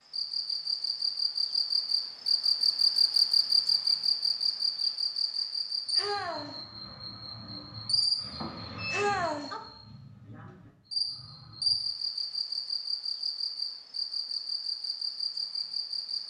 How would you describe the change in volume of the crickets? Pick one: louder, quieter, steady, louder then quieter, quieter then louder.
quieter.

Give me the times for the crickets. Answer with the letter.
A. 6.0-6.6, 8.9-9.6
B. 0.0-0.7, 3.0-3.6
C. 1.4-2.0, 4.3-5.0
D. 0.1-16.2
D.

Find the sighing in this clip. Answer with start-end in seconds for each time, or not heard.
6.0-6.6, 8.9-9.6.